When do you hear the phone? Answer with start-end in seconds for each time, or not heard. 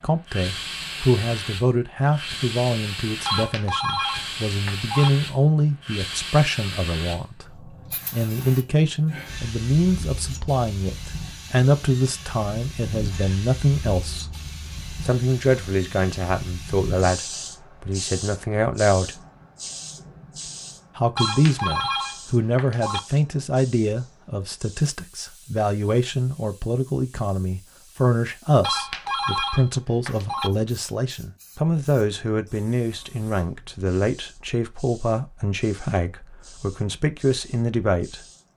3.2-5.1, 21.1-23.0, 28.6-30.5.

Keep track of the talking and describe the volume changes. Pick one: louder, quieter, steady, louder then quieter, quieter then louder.
steady.